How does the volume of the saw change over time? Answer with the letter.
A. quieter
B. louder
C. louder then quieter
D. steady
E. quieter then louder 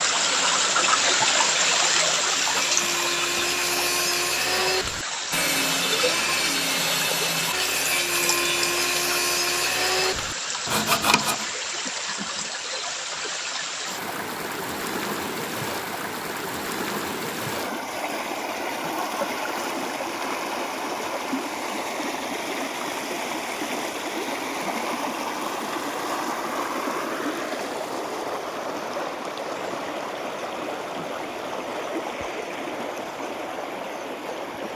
B.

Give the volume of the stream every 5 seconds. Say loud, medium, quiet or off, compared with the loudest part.
loud, medium, medium, medium, medium, medium, medium.